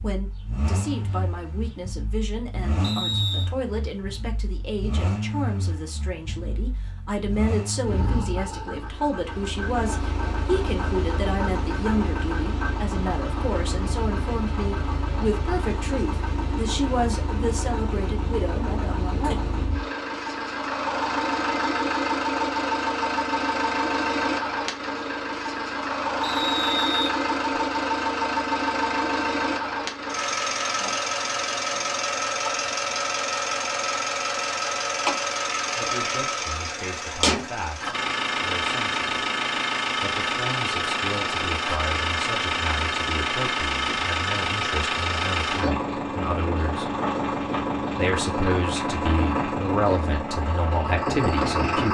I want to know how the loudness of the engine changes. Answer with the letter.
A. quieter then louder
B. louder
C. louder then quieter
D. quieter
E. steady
B.